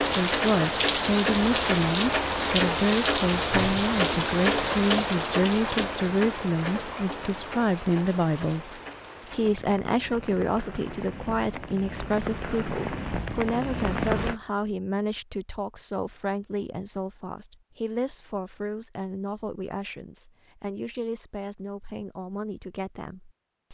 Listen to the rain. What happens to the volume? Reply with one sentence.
The loudness of the rain goes down, then up.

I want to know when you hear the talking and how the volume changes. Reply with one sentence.
You can hear the talking from 0.1 to 23.7 s, getting quieter.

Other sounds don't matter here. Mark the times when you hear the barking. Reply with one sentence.
The barking can't be heard in this clip.